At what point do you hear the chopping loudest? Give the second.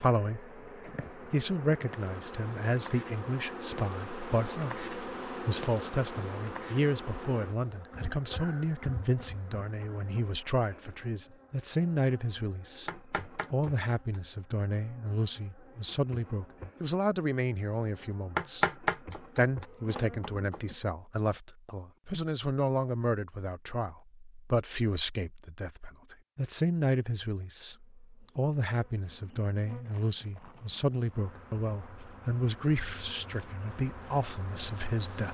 19 s.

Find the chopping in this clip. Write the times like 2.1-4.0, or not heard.
12.8-14.2, 18.4-20.6.